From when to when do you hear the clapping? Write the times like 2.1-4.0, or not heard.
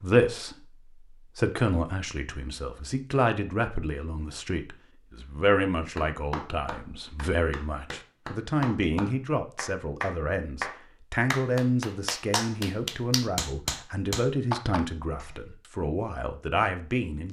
5.9-15.3.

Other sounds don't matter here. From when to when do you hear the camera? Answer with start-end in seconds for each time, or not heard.
not heard.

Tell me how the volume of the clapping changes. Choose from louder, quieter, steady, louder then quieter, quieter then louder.
louder.